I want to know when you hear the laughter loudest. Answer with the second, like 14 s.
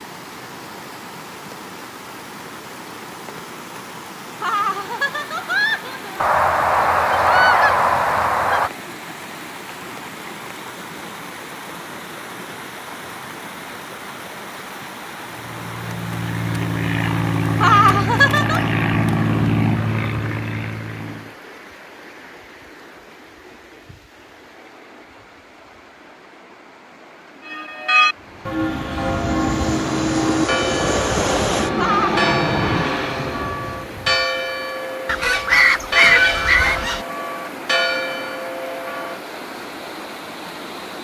18 s.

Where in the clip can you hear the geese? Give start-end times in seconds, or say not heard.
6.2-8.7, 35.0-37.0.